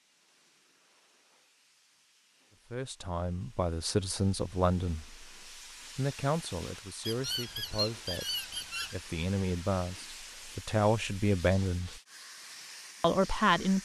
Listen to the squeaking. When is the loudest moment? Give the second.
8 s.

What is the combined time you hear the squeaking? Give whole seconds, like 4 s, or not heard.
2 s.